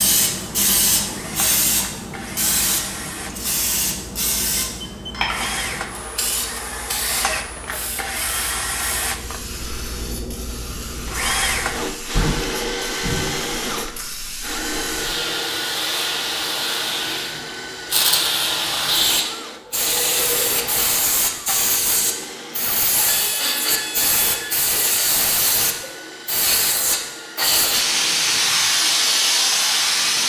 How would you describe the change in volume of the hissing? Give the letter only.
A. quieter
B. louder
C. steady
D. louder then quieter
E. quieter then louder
E.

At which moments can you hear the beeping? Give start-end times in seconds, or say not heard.
4.5-5.3, 23.1-24.6.